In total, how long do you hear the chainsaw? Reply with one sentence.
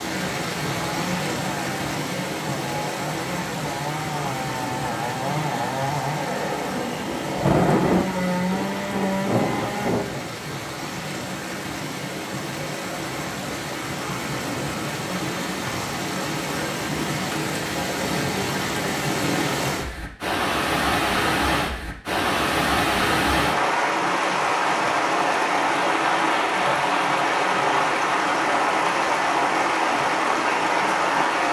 You can hear the chainsaw for 10 seconds altogether.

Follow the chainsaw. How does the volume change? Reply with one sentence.
The loudness of the chainsaw goes up.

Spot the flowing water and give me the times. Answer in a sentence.
You can hear the flowing water from 0.0 to 31.4 s.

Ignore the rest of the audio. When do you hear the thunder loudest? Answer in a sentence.
The volume of the thunder peaks at 8 seconds.